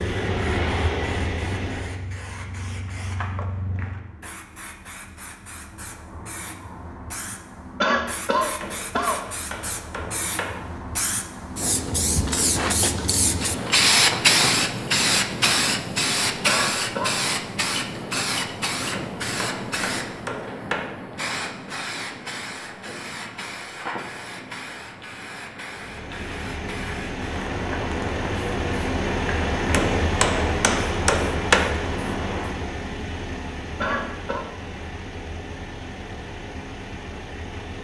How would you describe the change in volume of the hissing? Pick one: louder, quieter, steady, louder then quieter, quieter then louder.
louder then quieter.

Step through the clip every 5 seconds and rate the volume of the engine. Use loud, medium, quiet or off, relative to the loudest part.
loud, off, off, off, off, loud, loud, medium.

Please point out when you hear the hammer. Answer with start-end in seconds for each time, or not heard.
8.6-10.6, 18.9-20.9, 29.7-31.7.